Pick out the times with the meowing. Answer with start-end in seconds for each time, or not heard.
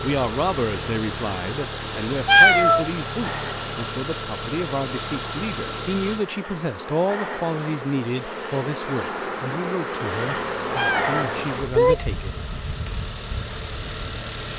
2.2-2.9, 10.8-12.1.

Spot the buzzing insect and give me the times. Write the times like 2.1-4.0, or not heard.
0.0-14.2.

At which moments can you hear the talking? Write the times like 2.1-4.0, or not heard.
0.0-12.3.